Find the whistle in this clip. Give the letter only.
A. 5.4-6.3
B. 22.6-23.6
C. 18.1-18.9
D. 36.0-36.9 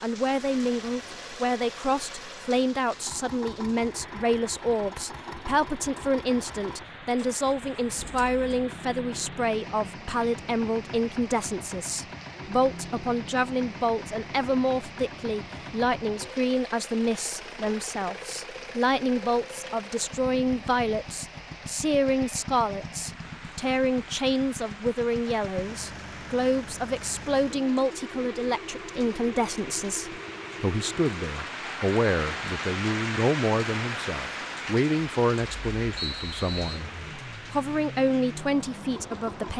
D.